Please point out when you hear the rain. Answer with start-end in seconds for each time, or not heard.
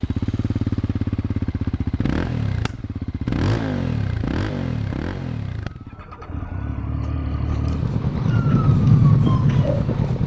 not heard.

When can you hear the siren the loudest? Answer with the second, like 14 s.
9 s.